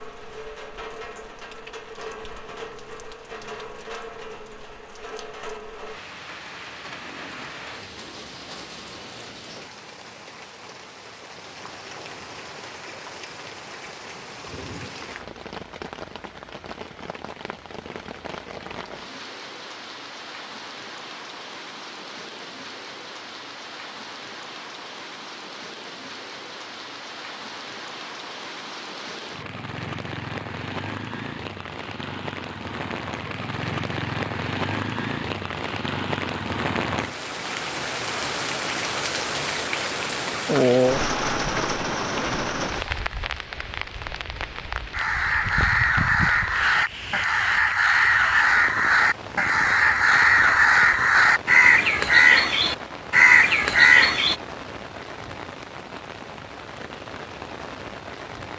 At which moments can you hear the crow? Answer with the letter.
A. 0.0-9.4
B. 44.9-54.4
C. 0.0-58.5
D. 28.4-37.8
B.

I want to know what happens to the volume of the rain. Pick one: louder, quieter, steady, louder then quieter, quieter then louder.
louder then quieter.